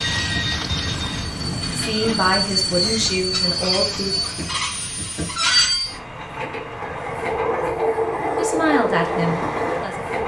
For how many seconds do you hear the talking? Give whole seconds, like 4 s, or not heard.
4 s.